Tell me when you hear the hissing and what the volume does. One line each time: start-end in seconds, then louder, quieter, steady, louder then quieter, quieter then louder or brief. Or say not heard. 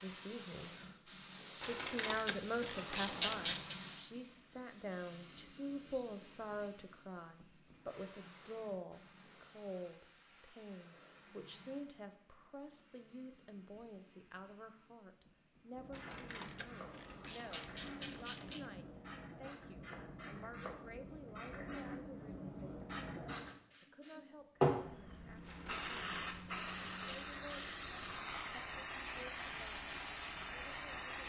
0.0-31.2 quieter then louder.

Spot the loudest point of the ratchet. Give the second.
3 s.